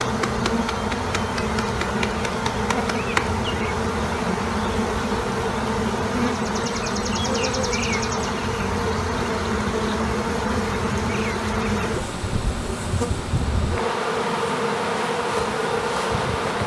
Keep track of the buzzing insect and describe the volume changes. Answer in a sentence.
The loudness of the buzzing insect stays about the same.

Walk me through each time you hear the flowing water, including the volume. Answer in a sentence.
The flowing water can be heard from 0.0 to 16.6 s, at a steady volume.